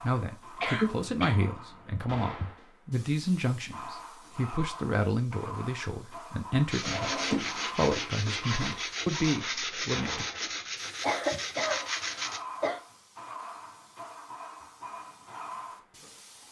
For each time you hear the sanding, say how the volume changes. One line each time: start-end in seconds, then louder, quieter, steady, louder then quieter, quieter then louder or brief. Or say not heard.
6.7-12.4 steady.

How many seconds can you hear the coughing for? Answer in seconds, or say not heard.
4 s.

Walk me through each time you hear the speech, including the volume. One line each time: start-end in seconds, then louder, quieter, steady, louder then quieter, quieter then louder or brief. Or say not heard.
0.0-10.2 steady.